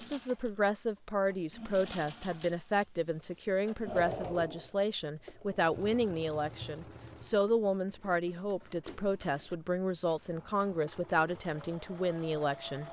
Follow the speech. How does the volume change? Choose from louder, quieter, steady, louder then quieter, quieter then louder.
steady.